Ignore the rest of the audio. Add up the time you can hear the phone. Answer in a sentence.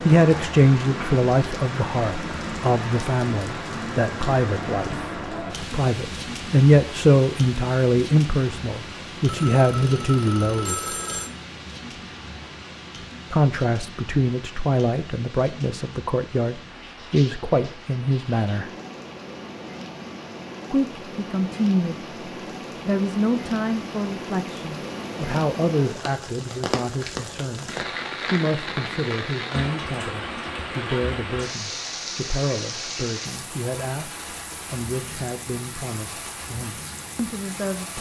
The phone can be heard for 2 seconds in total.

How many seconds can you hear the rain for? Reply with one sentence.
The rain can be heard for 38 seconds in total.